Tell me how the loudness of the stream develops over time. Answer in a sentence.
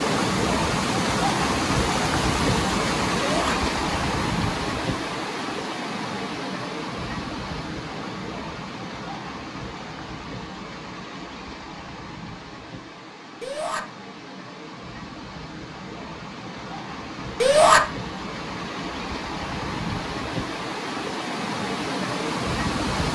The loudness of the stream goes down, then up.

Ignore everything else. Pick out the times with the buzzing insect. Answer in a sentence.
You can't hear the buzzing insect here.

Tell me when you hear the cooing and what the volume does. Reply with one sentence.
You can't hear the cooing here.